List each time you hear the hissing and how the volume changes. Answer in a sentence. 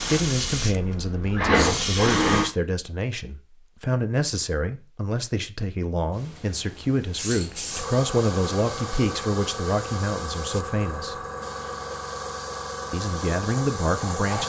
You can hear the hissing briefly from 0.0 to 2.5 s; and from 6.2 to 14.4 s, at a steady volume.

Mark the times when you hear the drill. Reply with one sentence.
The drill can be heard from 0.0 to 2.5 s.